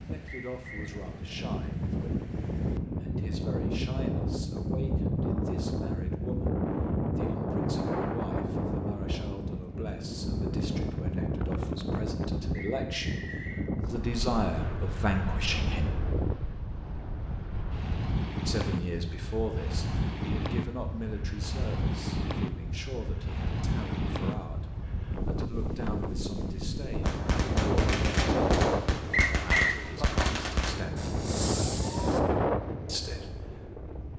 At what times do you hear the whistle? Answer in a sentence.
You can hear the whistle from 0.2 to 0.9 s, from 12.5 to 13.6 s and from 29.1 to 29.8 s.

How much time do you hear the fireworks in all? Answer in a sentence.
You can hear the fireworks for 5 seconds altogether.